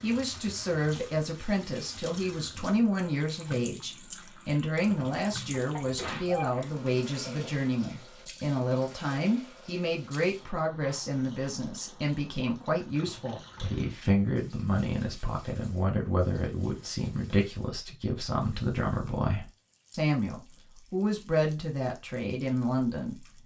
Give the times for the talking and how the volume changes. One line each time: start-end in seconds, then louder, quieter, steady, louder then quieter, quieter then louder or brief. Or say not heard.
0.0-23.2 steady.